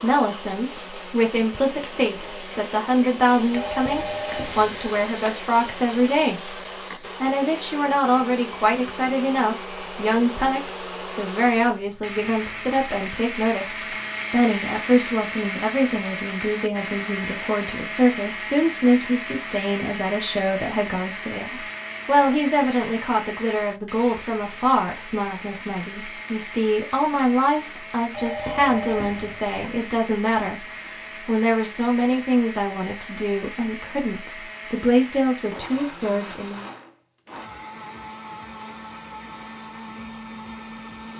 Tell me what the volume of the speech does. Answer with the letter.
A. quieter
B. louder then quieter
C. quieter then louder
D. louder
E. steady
E.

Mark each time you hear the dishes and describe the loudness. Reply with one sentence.
The dishes can't be heard in this clip.